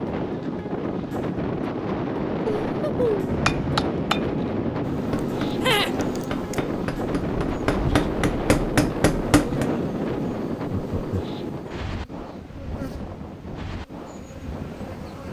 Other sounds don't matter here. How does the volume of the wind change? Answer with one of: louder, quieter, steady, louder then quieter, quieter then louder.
quieter.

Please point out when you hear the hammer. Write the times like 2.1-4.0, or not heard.
3.2-9.7.